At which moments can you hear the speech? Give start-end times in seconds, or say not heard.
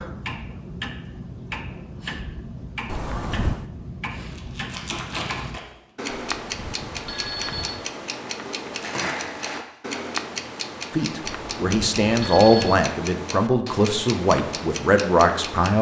10.9-15.7.